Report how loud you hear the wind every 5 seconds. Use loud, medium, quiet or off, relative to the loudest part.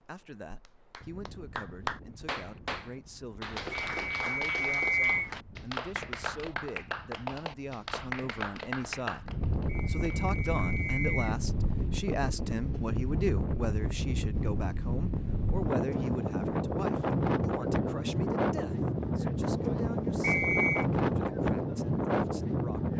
quiet, quiet, medium, loud, loud.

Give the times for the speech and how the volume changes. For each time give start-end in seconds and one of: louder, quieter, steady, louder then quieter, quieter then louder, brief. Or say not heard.
0.0-22.9 louder then quieter.